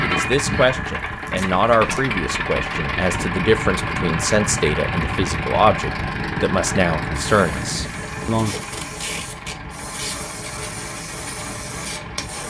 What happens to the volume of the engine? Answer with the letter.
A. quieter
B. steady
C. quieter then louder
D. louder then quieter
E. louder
A.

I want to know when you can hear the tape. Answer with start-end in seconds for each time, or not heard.
1.2-2.0, 8.3-10.2.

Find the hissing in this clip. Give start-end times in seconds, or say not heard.
7.2-12.4.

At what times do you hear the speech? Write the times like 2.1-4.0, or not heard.
0.0-8.6.